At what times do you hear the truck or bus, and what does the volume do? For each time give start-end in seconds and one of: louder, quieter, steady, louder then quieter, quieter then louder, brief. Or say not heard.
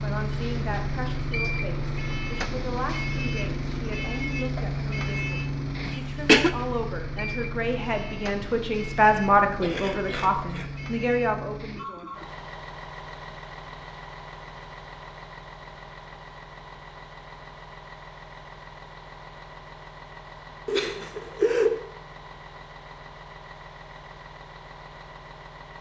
0.0-25.7 quieter.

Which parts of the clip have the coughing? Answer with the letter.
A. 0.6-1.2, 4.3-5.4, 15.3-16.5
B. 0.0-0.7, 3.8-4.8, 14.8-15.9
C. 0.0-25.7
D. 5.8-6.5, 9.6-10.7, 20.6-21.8
D.